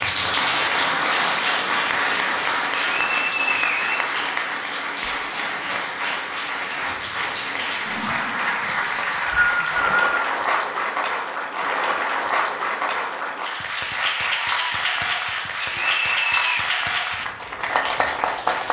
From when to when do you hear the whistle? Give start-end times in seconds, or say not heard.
2.8-4.7, 8.8-10.2, 15.6-16.6.